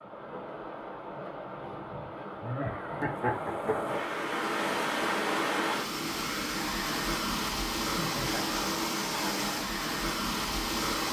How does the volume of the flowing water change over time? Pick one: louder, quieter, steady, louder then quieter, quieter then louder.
louder.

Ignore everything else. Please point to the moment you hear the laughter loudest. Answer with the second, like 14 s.
3 s.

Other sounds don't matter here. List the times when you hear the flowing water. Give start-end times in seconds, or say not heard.
0.0-11.0.